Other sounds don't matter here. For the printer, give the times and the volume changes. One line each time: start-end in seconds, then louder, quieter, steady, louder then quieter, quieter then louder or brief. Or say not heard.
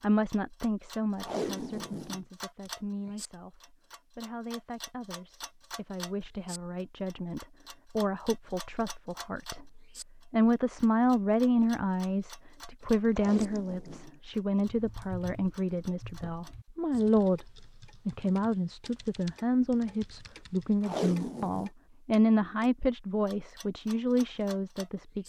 not heard.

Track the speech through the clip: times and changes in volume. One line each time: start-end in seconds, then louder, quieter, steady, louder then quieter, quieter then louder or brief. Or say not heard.
0.0-25.2 louder.